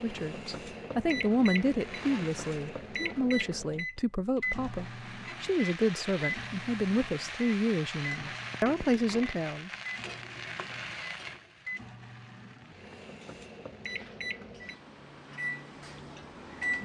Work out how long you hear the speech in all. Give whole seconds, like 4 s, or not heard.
10 s.